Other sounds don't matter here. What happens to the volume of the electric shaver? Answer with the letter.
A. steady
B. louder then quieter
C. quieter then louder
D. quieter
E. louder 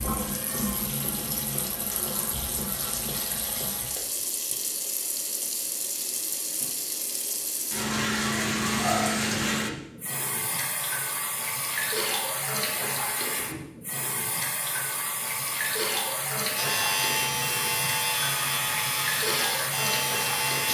A.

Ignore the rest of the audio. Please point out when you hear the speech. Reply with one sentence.
You can't hear the speech here.